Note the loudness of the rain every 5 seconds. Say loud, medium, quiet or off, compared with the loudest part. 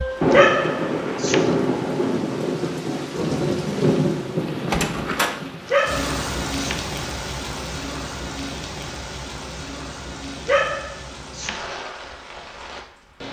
loud, medium, quiet.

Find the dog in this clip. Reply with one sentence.
The dog can be heard from 0.3 to 1.5 s, from 5.7 to 6.8 s and from 10.4 to 11.7 s.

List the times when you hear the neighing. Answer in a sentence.
You can't hear the neighing here.